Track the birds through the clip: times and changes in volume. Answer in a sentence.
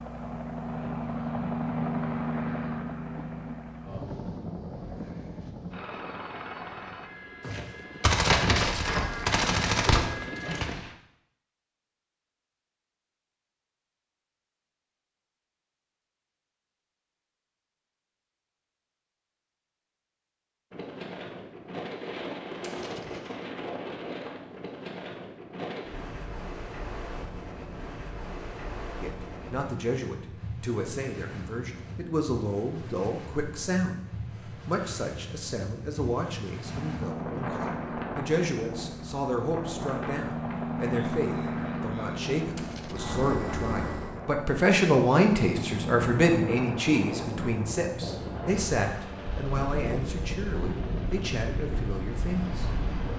You can't hear the birds here.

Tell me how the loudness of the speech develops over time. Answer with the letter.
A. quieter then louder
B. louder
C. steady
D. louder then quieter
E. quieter
D.